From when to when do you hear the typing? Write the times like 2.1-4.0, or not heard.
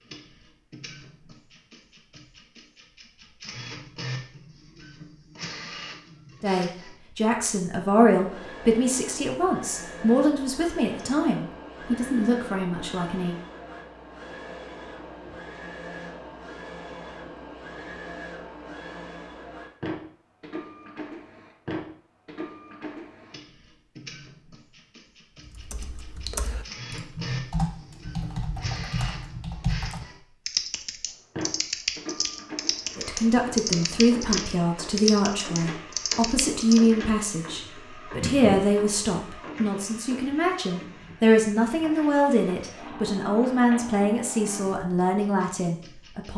25.4-36.9.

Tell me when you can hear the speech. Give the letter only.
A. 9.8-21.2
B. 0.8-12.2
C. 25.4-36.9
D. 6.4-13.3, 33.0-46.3
D.